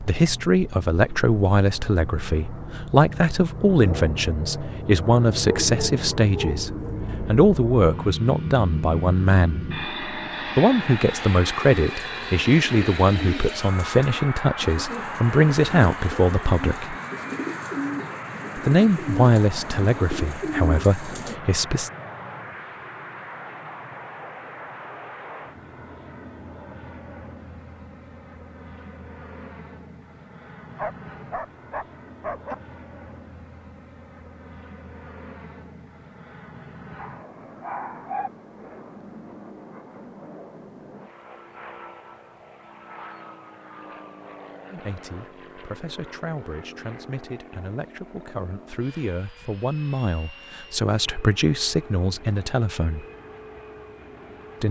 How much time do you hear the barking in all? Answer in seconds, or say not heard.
5 s.